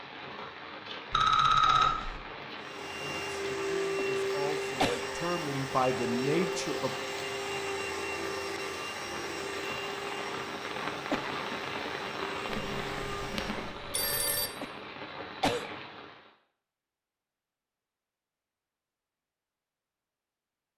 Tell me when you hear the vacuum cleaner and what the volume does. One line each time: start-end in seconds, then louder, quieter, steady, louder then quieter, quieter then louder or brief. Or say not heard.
2.5-13.8 quieter.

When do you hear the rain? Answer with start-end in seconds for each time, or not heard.
0.0-16.4.